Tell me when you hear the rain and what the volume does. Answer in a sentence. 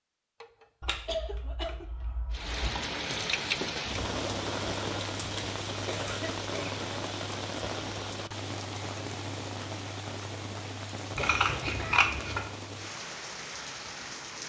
The rain can be heard from 2.3 to 14.4 s, getting quieter.